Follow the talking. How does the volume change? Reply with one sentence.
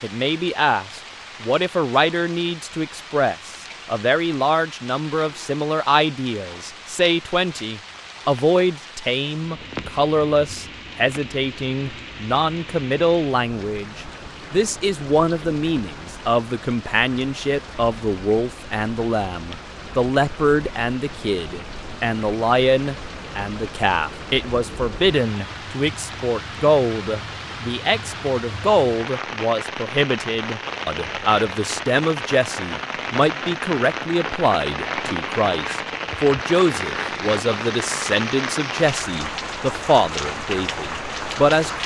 The loudness of the talking stays about the same.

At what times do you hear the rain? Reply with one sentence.
You can hear the rain from 0.0 to 41.8 s.